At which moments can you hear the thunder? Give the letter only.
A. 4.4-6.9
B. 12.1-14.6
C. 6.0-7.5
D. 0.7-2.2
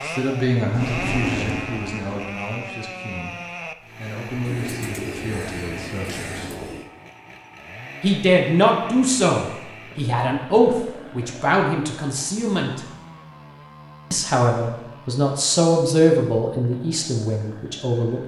D.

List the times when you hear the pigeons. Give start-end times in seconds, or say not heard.
4.4-6.9.